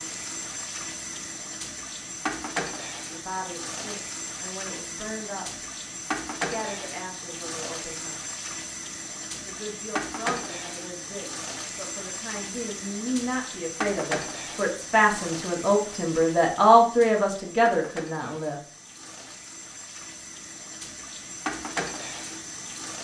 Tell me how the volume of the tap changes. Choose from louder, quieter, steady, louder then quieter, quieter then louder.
steady.